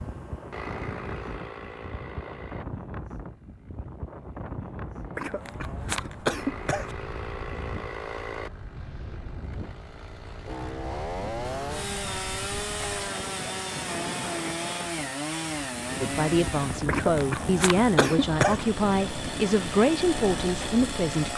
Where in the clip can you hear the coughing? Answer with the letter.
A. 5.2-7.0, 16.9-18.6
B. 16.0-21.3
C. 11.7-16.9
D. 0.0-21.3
A.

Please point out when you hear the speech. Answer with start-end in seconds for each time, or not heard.
16.0-21.3.